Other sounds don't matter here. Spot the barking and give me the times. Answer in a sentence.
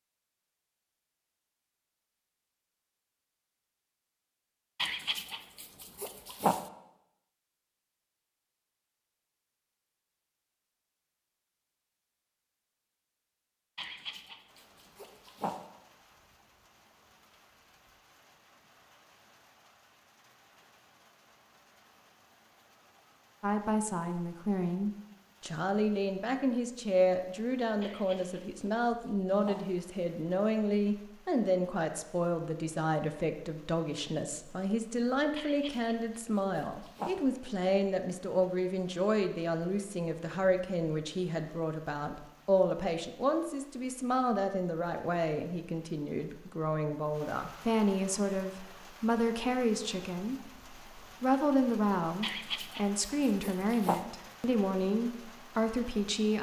The barking can be heard from 4.8 to 6.7 s, from 13.8 to 15.7 s, from 27.8 to 29.7 s, from 35.4 to 37.2 s and from 52.2 to 54.0 s.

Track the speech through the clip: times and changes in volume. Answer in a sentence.
The speech can be heard from 23.4 to 56.3 s, at a steady volume.